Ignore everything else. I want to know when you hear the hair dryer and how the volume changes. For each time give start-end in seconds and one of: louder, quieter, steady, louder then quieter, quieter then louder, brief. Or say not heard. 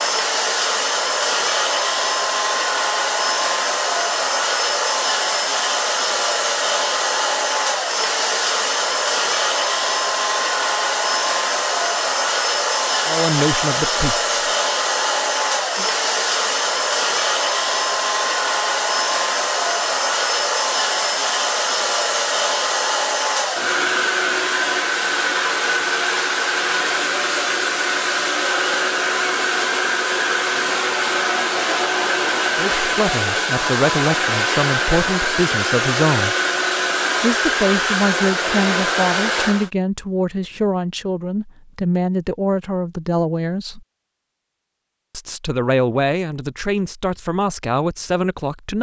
0.0-39.7 steady.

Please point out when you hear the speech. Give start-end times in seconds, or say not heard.
13.1-14.2, 32.5-36.4, 37.2-43.8, 45.1-48.7.